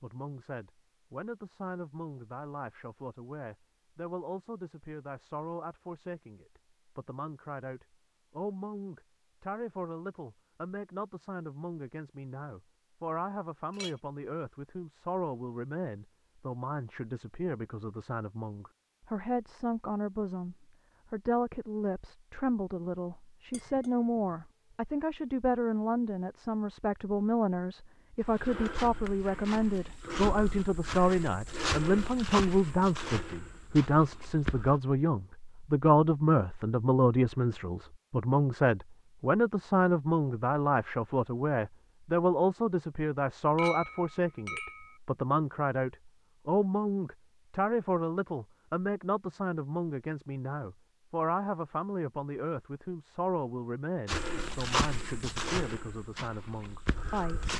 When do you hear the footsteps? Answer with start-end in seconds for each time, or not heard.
28.2-34.8, 54.0-57.5.